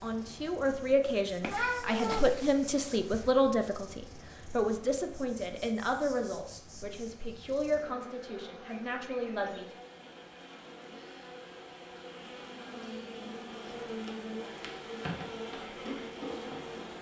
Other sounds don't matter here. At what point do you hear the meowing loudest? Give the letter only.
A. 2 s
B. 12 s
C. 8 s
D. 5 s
A.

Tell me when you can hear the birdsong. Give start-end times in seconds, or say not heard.
not heard.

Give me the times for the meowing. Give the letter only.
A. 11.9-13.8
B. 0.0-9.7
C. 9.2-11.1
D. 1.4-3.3
D.